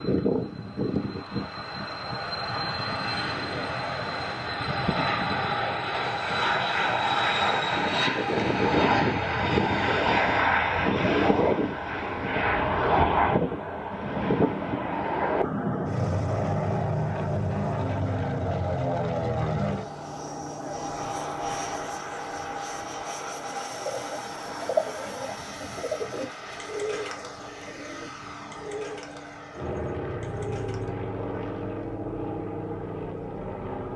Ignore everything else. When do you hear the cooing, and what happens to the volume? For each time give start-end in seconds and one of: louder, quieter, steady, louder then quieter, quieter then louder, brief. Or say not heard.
23.7-30.9 quieter.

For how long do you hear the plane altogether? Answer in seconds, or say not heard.
34 s.